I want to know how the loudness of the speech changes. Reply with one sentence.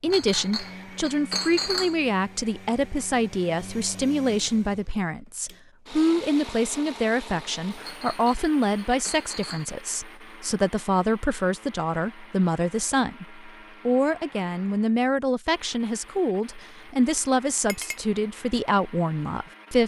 The loudness of the speech stays about the same.